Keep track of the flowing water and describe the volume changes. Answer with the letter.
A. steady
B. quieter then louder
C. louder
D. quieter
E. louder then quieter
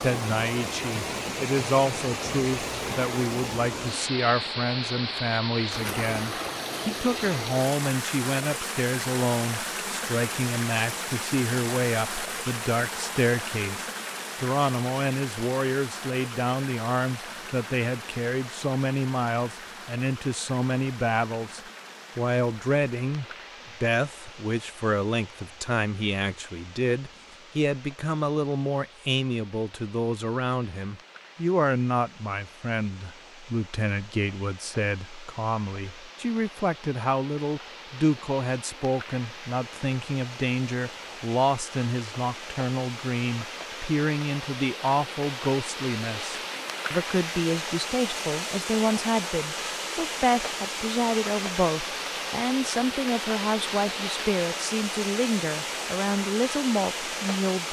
B.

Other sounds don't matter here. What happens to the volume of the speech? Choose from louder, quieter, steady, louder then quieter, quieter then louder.
steady.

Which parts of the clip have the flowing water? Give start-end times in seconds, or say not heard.
0.0-57.6.